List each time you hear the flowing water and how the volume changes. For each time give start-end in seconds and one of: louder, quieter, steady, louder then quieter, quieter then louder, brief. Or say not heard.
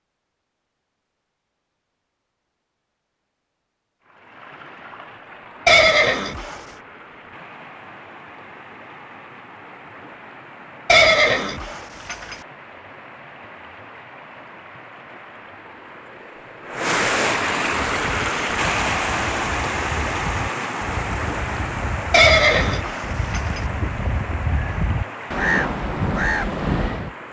4.0-27.2 louder then quieter.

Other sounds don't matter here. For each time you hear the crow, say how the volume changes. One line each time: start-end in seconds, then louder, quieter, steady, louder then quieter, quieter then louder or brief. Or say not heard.
17.9-27.1 louder.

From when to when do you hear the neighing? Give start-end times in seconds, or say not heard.
5.7-6.6, 10.8-12.3, 22.1-23.6.